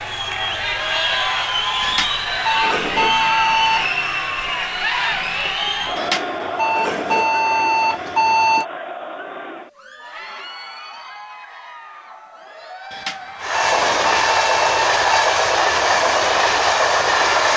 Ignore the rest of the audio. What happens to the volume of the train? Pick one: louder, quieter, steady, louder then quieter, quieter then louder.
steady.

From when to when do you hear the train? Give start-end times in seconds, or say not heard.
13.4-17.5.